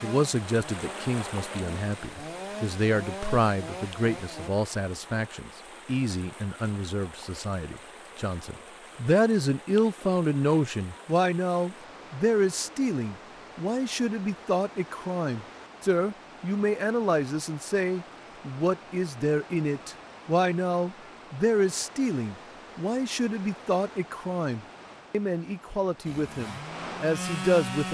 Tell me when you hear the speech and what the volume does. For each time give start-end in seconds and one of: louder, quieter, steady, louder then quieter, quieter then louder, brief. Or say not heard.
0.0-27.9 steady.